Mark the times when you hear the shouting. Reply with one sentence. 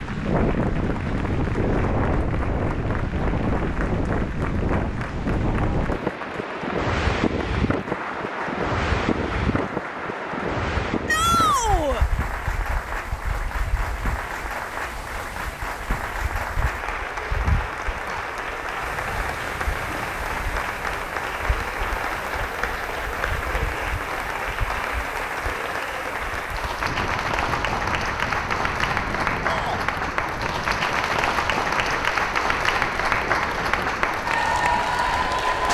You can hear the shouting from 11.1 to 12.1 s and from 29.4 to 29.9 s.